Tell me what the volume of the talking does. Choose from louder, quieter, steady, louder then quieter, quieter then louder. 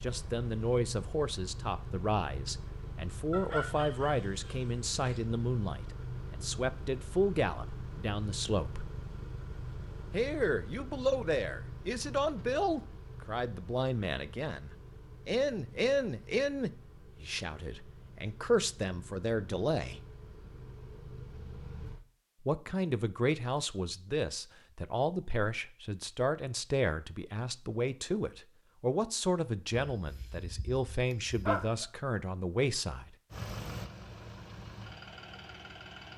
steady.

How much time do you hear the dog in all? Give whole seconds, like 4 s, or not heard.
4 s.